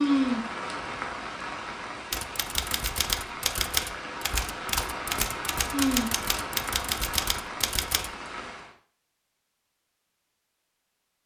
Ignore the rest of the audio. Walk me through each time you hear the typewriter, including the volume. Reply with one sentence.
The typewriter can be heard from 2.1 to 8.1 s, at a steady volume.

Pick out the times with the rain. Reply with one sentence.
The rain can be heard from 0.0 to 8.7 s.